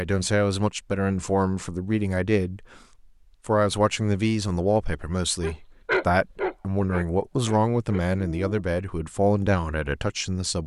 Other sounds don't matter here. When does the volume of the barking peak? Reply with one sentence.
The loudest moment of the barking is at 6 seconds.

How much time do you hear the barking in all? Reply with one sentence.
The barking can be heard for 3 seconds in total.